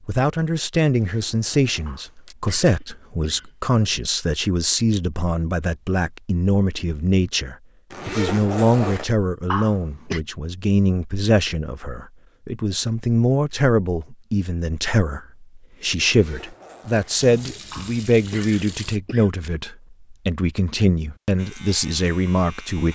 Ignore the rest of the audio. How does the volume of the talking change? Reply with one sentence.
The volume of the talking stays about the same.